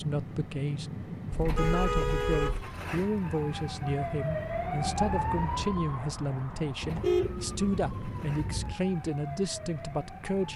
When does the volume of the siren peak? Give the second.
5 s.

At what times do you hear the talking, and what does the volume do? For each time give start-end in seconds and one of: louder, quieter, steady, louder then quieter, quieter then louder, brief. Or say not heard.
0.0-10.5 steady.